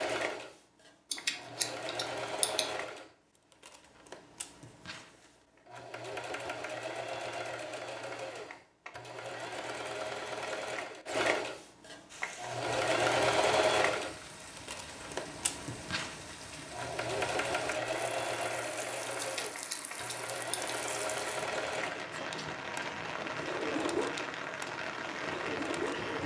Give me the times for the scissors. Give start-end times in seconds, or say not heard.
1.1-2.6, 19.2-20.8.